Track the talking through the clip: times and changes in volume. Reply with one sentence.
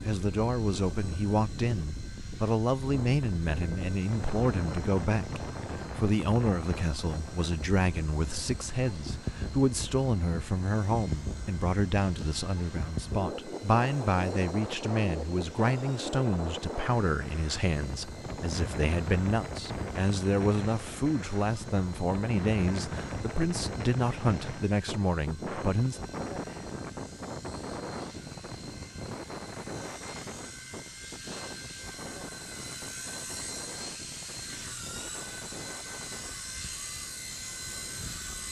The talking can be heard from 0.0 to 26.0 s, at a steady volume.